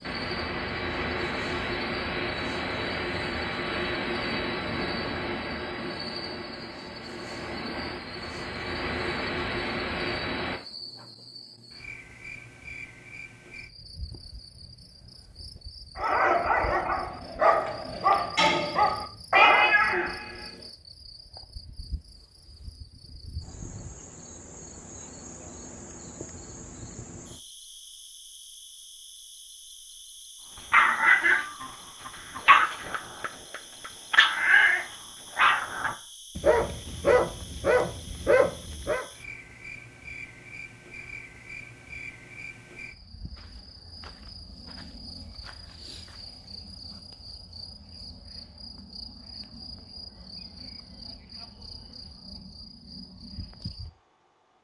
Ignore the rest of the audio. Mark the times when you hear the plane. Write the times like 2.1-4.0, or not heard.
0.0-10.6.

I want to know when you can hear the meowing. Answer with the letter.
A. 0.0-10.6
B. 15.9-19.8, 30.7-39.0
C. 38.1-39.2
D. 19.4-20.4
D.